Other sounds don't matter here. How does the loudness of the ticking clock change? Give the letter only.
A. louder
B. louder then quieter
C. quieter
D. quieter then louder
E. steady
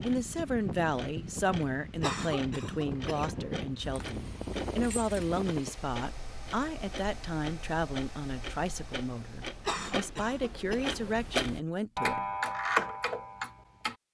A.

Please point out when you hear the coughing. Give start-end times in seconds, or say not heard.
2.0-3.5, 9.7-11.1.